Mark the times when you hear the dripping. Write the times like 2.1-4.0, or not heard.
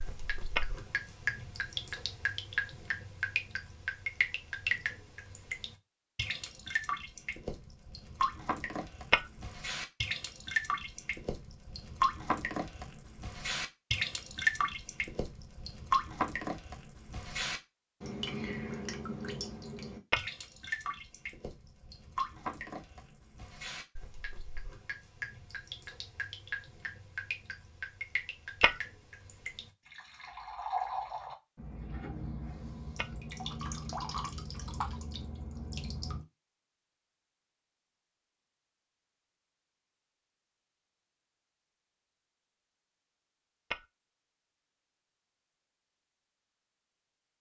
0.0-36.2.